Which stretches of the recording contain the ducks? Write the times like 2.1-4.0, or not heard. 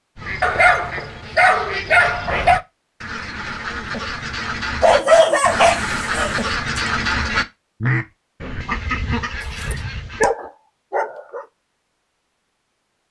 0.1-10.3.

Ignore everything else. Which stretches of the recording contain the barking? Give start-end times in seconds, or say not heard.
0.4-2.6, 4.8-6.8, 9.4-11.4.